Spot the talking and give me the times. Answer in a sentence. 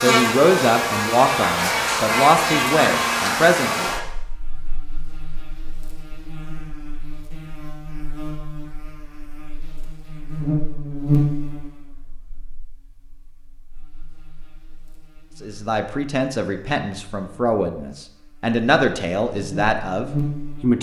The talking can be heard from 0.0 to 3.9 s and from 15.4 to 20.7 s.